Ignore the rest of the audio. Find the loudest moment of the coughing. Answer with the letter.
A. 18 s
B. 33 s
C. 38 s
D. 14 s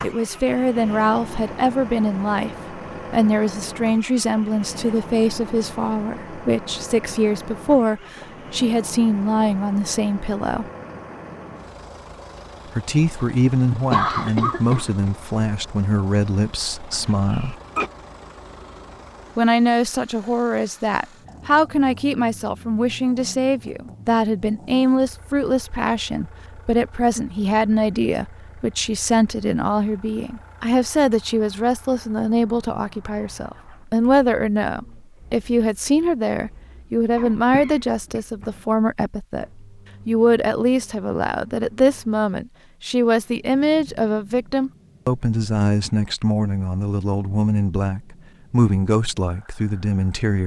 D.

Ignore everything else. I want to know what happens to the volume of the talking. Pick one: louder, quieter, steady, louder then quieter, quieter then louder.
steady.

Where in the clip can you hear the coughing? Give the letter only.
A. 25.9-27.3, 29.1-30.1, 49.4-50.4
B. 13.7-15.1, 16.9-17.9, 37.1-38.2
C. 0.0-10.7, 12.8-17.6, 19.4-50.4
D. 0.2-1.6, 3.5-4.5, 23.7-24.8
B.